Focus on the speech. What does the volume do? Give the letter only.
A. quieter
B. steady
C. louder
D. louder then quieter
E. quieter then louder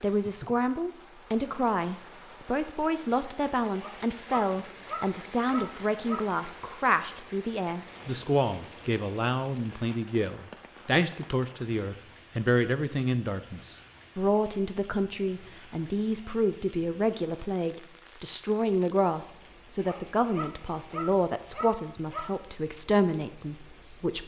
B.